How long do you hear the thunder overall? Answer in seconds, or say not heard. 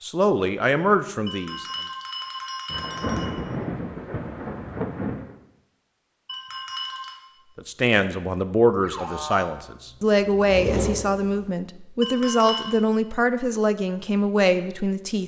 3 s.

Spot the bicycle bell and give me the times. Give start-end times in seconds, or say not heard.
1.2-3.3, 6.2-7.2, 12.0-12.7.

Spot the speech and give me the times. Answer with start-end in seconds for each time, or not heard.
0.0-1.6, 7.5-15.2.